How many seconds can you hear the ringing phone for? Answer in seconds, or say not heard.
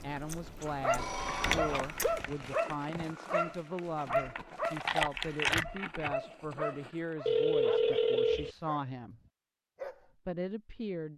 3 s.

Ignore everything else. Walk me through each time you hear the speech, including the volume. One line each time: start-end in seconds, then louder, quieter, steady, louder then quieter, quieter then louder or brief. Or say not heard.
0.0-9.2 steady
10.2-11.1 brief.